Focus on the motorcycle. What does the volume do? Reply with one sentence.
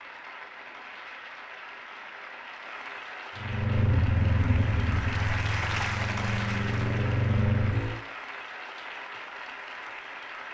The loudness of the motorcycle goes down, then up.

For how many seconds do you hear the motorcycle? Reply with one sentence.
You can hear the motorcycle for 5 seconds altogether.